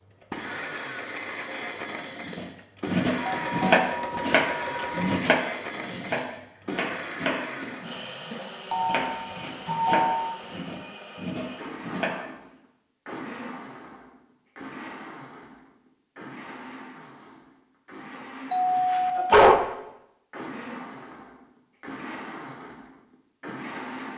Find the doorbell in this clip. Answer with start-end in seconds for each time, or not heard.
3.1-5.2, 8.7-10.3, 18.5-19.6.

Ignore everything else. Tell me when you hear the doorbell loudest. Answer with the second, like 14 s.
19 s.